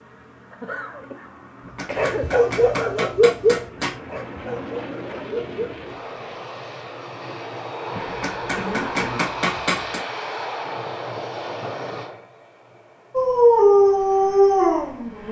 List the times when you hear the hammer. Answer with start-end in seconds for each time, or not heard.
1.6-4.0, 8.1-10.1.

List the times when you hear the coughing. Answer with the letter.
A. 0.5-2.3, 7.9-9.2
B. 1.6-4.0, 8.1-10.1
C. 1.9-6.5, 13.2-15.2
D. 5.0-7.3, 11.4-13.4
A.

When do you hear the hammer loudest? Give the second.
10 s.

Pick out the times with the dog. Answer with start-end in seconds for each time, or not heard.
1.9-6.5, 13.2-15.2.